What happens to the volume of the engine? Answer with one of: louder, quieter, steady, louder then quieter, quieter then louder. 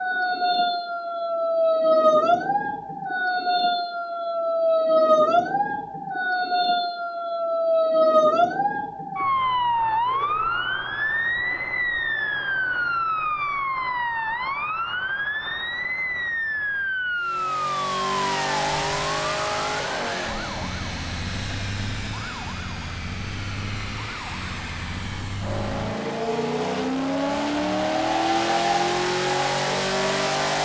quieter then louder.